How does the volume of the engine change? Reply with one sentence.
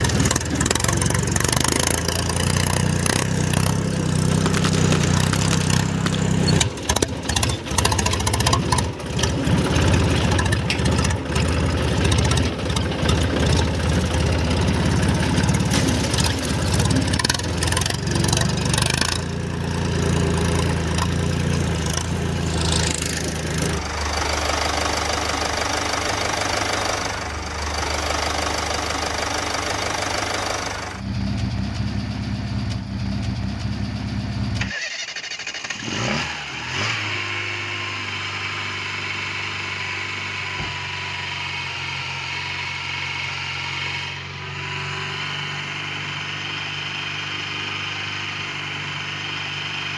The loudness of the engine goes down.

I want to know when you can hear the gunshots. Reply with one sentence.
The gunshots can be heard from 4.4 to 6.2 s.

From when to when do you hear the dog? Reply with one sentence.
The dog can't be heard in this clip.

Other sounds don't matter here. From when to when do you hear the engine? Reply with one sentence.
The engine can be heard from 0.0 to 49.9 s.